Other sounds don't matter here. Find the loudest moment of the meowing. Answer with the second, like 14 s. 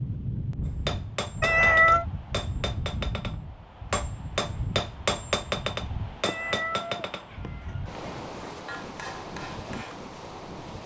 2 s.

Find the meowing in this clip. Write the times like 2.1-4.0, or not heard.
1.4-2.0, 6.2-8.1.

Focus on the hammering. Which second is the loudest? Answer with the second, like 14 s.
5 s.